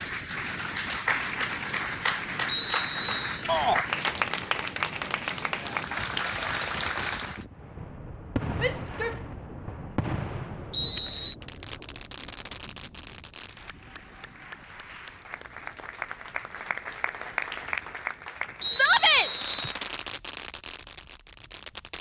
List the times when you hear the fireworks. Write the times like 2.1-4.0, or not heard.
7.5-13.8, 19.3-21.9.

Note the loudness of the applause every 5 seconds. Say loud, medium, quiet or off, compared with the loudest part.
loud, loud, quiet, medium, off.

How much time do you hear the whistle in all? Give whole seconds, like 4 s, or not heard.
3 s.